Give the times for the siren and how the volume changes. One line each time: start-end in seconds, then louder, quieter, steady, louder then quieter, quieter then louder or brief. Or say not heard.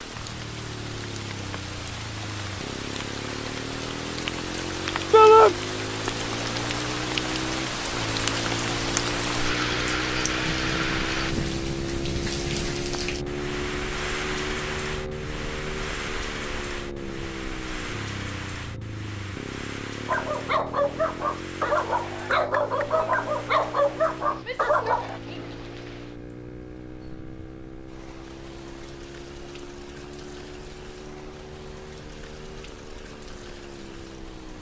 not heard.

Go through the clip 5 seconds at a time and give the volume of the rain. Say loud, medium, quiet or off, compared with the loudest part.
medium, loud, loud, medium, quiet, quiet, quiet.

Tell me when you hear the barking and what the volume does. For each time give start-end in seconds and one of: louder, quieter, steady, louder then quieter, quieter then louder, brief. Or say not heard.
20.1-25.2 steady.